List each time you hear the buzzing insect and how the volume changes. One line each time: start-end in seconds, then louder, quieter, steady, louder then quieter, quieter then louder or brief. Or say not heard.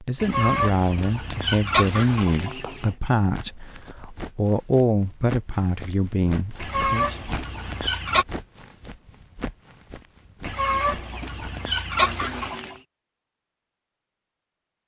not heard.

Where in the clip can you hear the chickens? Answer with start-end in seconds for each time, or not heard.
0.2-3.0, 6.6-8.2, 10.4-12.8.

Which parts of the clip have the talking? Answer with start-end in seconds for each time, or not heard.
0.0-7.2.